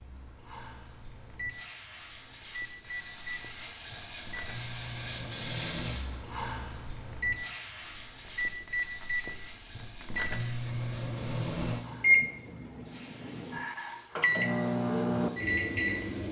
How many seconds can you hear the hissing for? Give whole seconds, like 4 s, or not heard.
16 s.